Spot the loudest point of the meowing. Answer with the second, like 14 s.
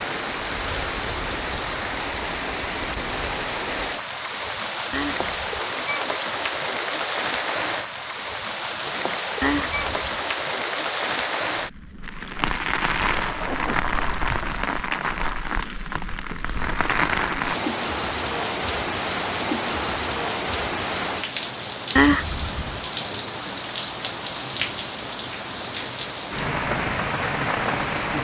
22 s.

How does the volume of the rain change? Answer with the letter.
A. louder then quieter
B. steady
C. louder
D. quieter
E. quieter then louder
B.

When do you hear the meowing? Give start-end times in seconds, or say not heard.
4.9-5.6, 9.4-10.2, 21.9-22.9.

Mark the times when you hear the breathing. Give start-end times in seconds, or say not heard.
not heard.